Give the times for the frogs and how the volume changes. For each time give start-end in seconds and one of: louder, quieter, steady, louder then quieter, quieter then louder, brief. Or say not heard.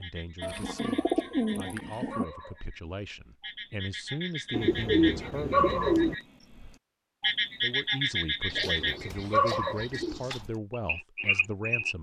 0.0-11.9 louder.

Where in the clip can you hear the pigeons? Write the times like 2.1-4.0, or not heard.
0.4-2.2, 4.5-6.2, 8.5-10.4.